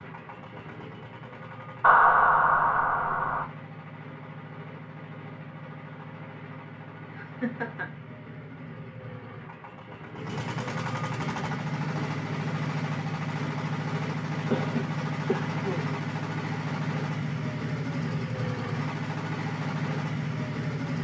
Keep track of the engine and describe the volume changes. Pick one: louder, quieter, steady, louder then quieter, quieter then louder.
louder.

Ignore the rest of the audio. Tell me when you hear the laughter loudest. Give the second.
2 s.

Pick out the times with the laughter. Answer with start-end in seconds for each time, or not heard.
1.8-3.5, 7.1-7.9, 14.5-15.9.